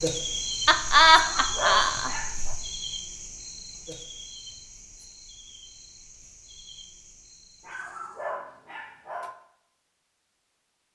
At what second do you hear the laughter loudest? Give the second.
1 s.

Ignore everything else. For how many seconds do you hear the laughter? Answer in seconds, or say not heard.
2 s.